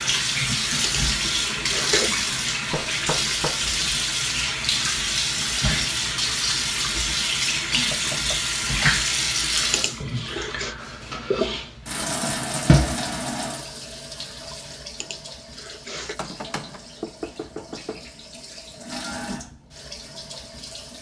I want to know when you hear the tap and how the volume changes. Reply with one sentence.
You can hear the tap from 0.0 to 20.9 s, getting quieter.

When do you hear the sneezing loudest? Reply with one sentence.
The loudest moment of the sneezing is at 2 seconds.